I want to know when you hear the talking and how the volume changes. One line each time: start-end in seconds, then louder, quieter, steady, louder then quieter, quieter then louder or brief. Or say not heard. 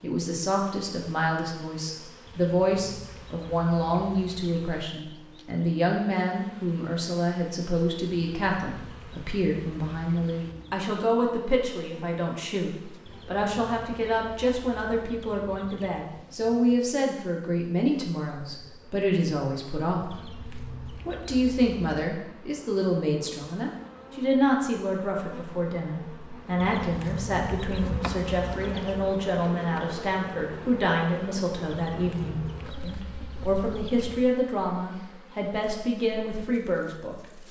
0.0-37.2 steady.